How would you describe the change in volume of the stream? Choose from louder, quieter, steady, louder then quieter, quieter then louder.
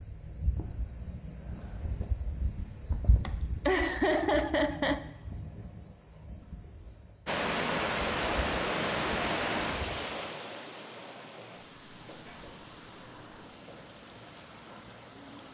quieter.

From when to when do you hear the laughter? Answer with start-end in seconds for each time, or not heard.
3.2-5.0.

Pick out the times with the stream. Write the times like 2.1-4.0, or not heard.
7.2-15.4.